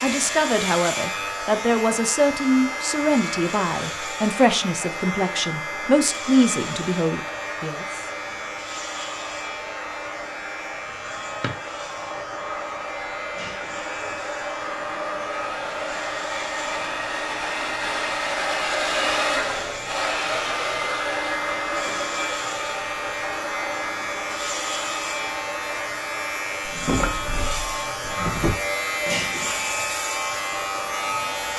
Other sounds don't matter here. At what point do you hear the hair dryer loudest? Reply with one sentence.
The volume of the hair dryer peaks at 19 seconds.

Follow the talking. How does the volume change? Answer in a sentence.
The loudness of the talking stays about the same.